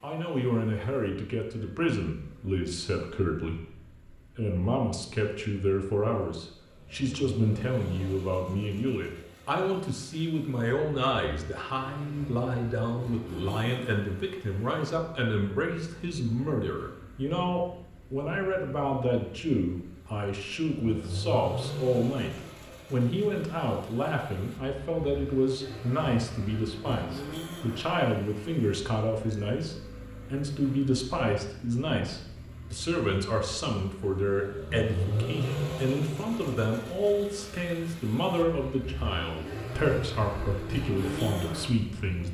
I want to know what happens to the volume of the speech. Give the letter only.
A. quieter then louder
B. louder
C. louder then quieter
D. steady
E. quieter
D.